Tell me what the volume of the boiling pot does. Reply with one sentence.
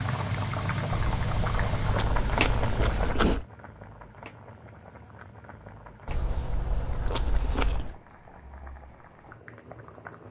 The loudness of the boiling pot goes down.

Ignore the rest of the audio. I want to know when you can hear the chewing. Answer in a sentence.
The chewing can be heard from 0.9 to 3.5 s and from 6.0 to 8.0 s.